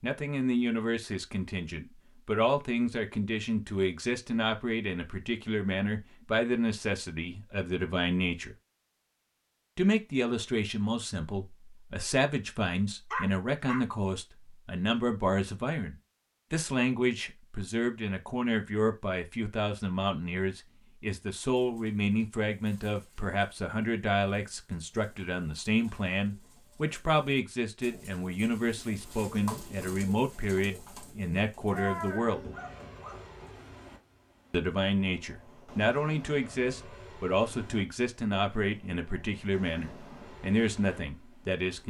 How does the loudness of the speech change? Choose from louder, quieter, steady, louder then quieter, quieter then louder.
steady.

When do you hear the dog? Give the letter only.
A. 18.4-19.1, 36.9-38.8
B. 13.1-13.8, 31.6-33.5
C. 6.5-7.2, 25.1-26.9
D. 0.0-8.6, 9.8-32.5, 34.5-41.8
B.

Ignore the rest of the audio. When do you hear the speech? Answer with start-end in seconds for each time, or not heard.
0.0-8.6, 9.8-32.5, 34.5-41.8.